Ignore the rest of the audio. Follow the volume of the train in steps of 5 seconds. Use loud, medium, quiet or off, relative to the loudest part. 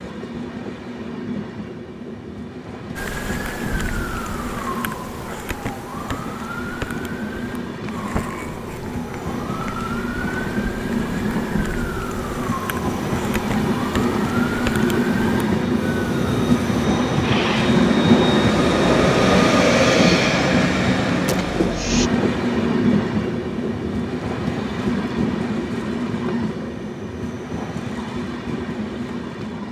quiet, quiet, medium, loud, loud, medium.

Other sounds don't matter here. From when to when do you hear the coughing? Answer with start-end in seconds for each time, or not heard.
17.2-17.8.